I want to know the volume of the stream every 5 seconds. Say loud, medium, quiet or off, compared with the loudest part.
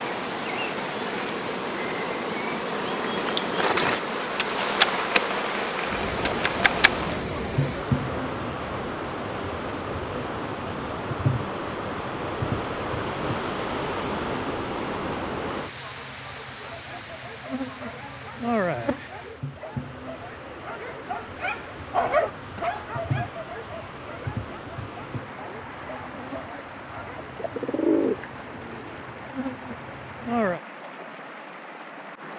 loud, loud, loud, medium, medium, medium, medium.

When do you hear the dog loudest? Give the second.
22 s.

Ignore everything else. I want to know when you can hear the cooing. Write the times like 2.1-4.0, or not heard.
27.1-29.0.